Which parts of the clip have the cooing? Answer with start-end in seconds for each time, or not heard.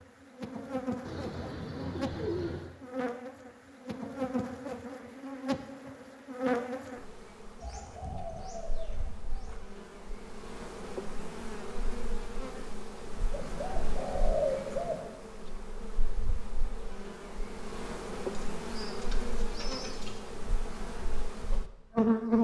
1.1-2.7, 7.6-9.6, 13.3-15.1, 18.3-20.2.